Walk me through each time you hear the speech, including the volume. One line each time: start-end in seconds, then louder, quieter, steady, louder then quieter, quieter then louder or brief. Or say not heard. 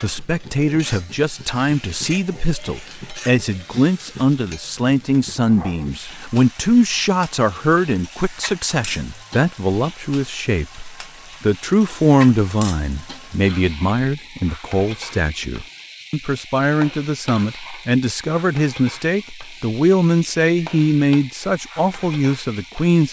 0.0-23.0 steady.